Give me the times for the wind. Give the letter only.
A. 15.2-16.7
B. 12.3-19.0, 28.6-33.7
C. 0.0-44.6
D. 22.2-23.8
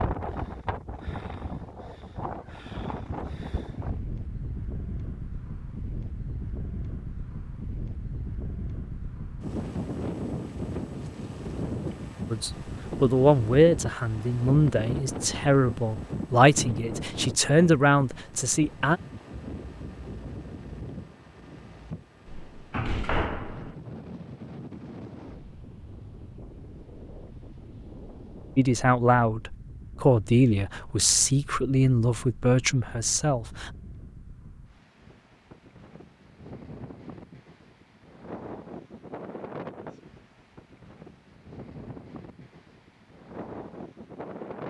C.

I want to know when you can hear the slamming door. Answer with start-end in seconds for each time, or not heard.
22.2-23.8.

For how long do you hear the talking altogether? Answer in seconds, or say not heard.
12 s.